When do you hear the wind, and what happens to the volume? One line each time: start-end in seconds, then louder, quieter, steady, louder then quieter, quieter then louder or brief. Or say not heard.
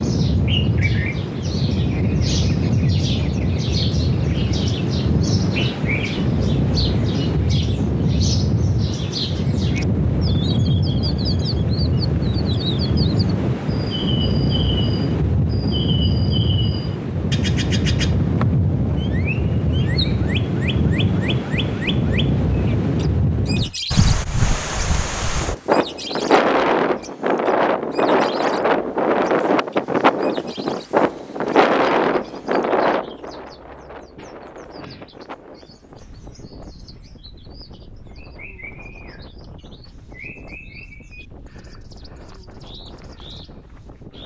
0.0-44.2 quieter.